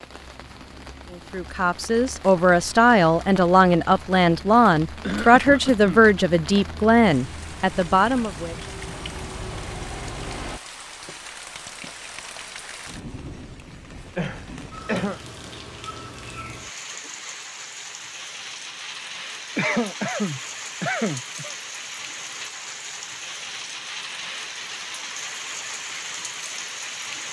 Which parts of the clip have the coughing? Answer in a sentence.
You can hear the coughing from 5.0 to 6.1 s, from 14.2 to 15.2 s and from 19.6 to 21.5 s.